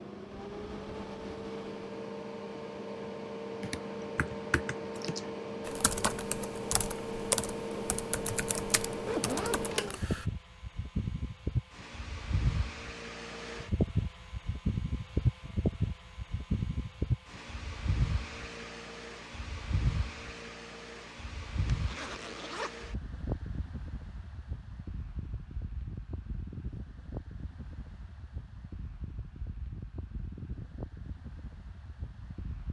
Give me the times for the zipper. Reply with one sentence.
The zipper can be heard from 9.1 to 10.1 s and from 21.7 to 22.7 s.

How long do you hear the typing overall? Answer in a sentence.
You can hear the typing for 7 seconds altogether.